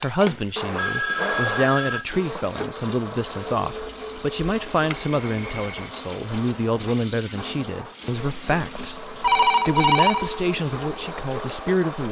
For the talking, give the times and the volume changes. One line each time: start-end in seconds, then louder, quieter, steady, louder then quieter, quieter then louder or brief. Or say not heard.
0.0-12.0 steady.